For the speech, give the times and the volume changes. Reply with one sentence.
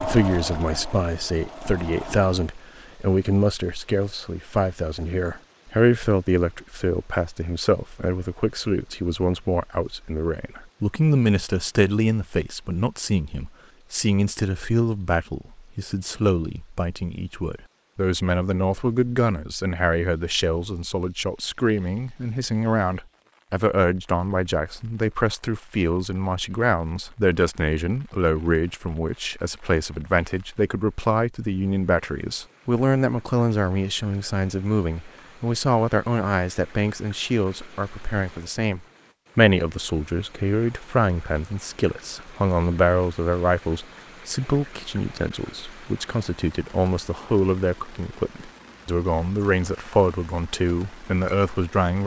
You can hear the speech from 0.0 to 52.0 s, at a steady volume.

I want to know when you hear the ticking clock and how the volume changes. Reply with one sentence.
You can't hear the ticking clock here.